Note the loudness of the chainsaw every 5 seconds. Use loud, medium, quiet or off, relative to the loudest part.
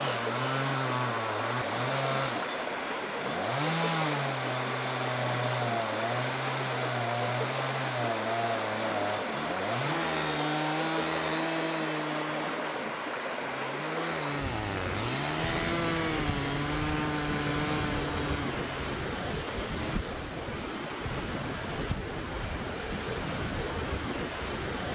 loud, loud, loud, loud, off.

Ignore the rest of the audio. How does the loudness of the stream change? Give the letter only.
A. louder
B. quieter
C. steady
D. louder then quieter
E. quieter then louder
C.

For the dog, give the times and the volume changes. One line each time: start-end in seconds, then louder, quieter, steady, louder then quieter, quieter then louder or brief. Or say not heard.
not heard.